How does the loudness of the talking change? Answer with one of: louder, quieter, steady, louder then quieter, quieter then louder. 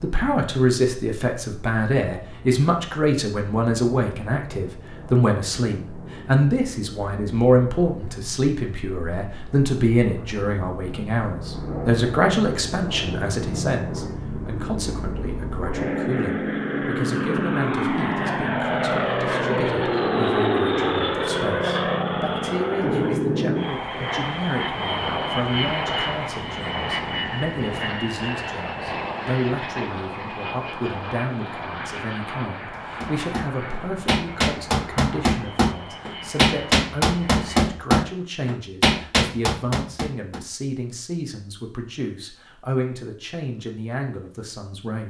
quieter.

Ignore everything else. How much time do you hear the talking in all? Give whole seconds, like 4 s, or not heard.
45 s.